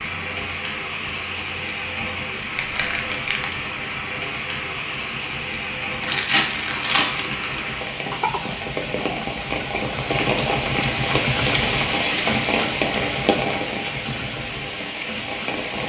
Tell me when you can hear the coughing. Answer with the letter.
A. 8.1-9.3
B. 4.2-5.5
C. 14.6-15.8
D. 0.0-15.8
A.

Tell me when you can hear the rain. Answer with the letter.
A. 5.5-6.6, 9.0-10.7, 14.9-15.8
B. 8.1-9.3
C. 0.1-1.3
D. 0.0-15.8
D.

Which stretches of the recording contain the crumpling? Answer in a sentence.
You can hear the crumpling from 2.5 to 3.6 s, from 6.0 to 7.7 s and from 11.9 to 12.8 s.